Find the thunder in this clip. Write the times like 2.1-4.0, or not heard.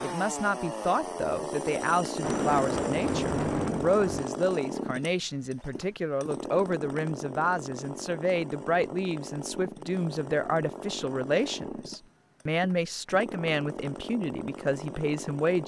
2.2-4.2.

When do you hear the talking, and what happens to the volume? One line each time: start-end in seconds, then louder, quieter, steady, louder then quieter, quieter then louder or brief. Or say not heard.
0.0-15.6 steady.